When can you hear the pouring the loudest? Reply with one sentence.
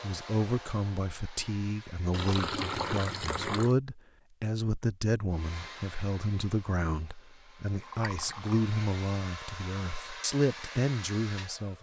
The volume of the pouring peaks at 3 seconds.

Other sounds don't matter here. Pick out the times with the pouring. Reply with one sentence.
The pouring can be heard from 2.1 to 3.8 s and from 7.8 to 8.7 s.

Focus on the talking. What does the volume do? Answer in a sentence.
The loudness of the talking stays about the same.